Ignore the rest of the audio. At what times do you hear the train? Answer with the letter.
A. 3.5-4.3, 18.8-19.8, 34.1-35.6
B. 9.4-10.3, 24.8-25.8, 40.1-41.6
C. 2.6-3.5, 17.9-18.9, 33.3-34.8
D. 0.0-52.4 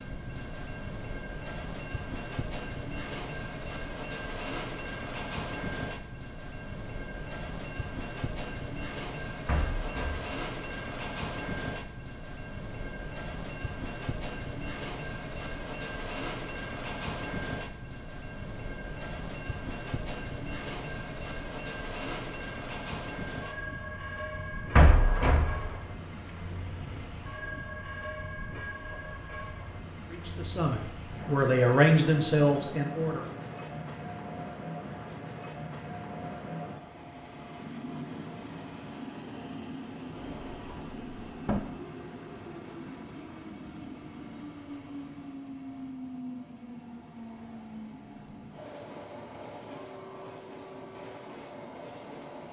D.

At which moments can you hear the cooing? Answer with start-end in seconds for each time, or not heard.
not heard.